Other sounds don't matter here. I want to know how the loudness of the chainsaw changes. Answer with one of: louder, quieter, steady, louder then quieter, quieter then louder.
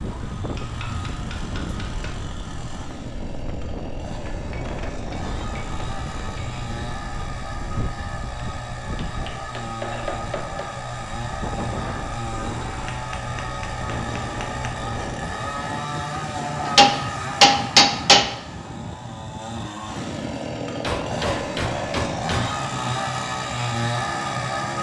louder.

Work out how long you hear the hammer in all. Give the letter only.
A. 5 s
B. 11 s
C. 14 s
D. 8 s
B.